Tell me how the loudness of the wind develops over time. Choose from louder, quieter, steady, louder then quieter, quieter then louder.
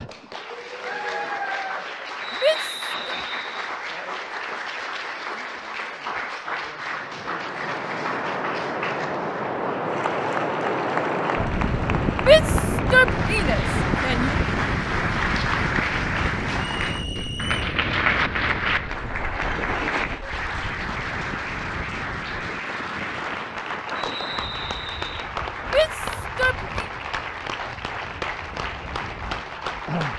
quieter.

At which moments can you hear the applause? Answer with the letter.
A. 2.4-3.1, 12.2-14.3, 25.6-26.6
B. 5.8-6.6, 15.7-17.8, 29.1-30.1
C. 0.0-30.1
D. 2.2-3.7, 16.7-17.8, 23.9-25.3
C.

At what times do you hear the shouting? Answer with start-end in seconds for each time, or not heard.
2.4-3.1, 12.2-14.3, 25.6-26.6.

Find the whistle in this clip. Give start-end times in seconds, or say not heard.
2.2-3.7, 16.7-17.8, 23.9-25.3.